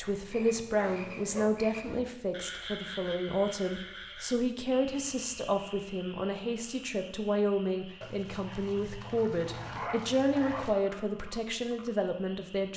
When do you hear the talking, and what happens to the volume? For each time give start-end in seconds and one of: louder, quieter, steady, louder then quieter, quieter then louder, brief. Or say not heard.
0.0-12.7 steady.